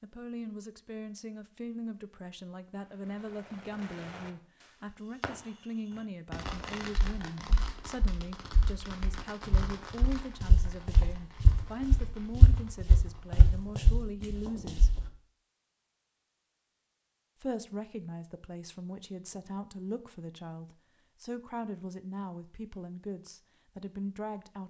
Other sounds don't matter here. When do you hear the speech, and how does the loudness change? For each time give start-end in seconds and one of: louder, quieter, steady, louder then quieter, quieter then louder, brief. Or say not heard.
0.0-14.9 steady
17.4-24.6 steady.